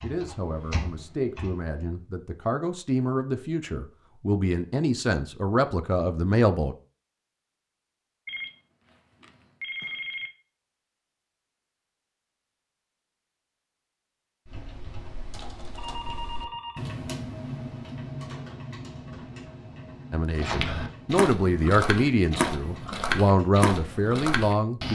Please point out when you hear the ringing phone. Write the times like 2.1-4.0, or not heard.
8.2-10.3, 15.8-16.8.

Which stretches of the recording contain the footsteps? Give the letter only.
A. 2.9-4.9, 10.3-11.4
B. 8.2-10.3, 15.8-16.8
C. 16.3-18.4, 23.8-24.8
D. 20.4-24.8
D.